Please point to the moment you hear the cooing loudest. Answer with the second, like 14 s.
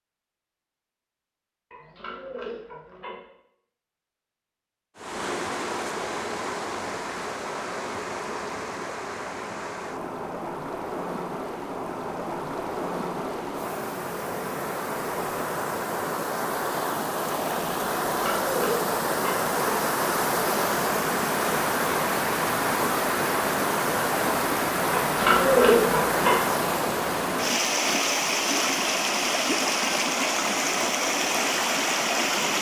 26 s.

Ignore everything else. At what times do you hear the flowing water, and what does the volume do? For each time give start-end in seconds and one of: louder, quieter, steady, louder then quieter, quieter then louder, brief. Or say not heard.
5.0-32.5 louder.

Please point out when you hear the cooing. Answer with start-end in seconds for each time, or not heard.
1.7-3.2, 18.1-19.9, 24.9-26.4.